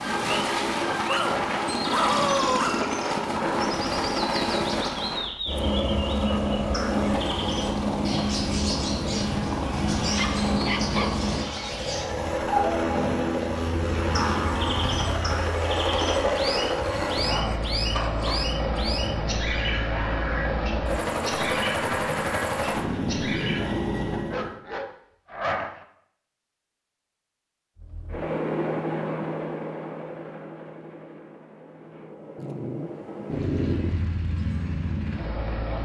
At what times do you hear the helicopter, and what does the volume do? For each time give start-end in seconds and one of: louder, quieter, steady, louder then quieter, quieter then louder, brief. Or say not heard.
0.0-24.6 steady
27.8-35.8 quieter then louder.